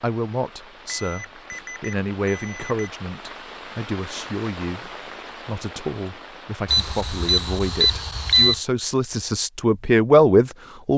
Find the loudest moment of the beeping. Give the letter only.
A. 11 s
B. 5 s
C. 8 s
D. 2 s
C.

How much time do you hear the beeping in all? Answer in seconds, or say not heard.
4 s.